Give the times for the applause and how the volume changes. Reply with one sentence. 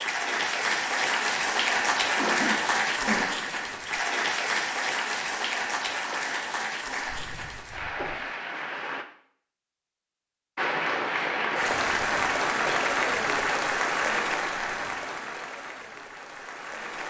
You can hear the applause from 0.0 to 9.1 s, getting quieter; and from 10.6 to 17.0 s, getting quieter.